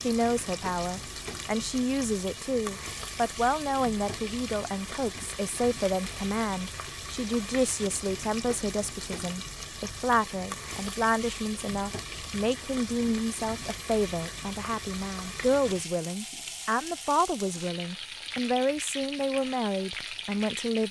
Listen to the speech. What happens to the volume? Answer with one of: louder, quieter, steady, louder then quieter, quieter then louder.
steady.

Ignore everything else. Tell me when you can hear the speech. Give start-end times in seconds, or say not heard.
0.0-20.8.